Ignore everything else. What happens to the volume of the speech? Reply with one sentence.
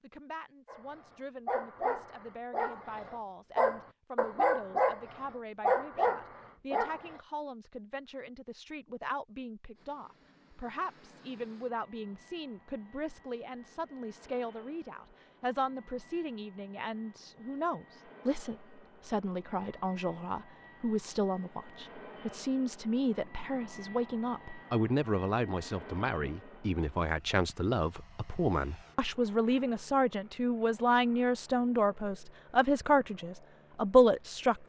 The loudness of the speech goes up.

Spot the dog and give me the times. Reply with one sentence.
The dog can be heard from 0.7 to 7.2 s.